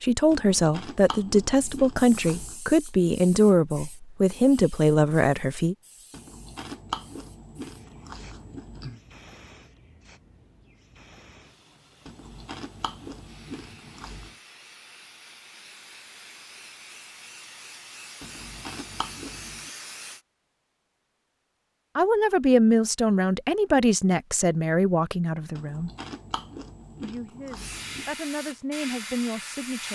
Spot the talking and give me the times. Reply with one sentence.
You can hear the talking from 0.0 to 5.8 s, from 21.9 to 25.9 s and from 27.0 to 29.8 s.